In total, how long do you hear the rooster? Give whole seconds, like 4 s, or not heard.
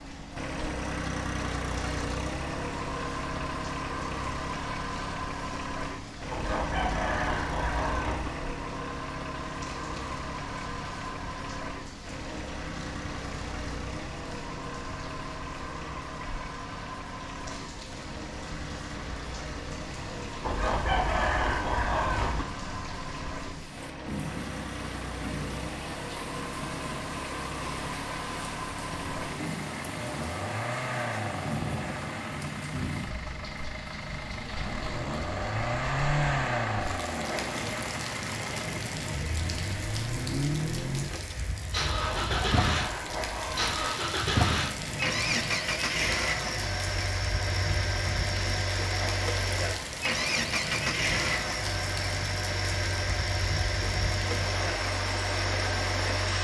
6 s.